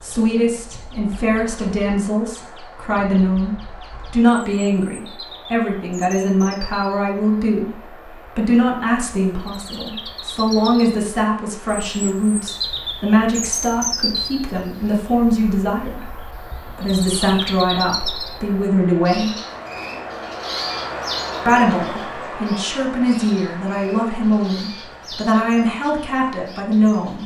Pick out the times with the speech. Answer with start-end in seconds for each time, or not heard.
0.0-19.4, 21.4-27.2.